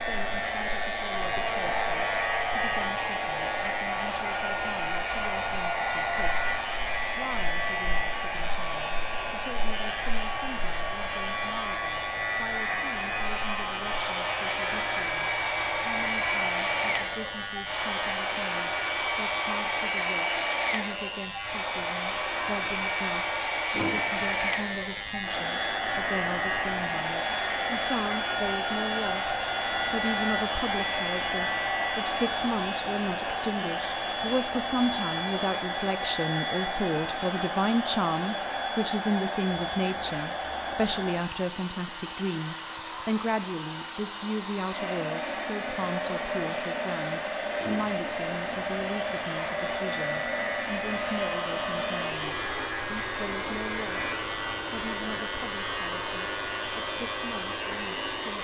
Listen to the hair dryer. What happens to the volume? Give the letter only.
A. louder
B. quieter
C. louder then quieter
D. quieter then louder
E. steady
E.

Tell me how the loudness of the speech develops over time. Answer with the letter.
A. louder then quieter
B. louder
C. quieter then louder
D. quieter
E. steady
A.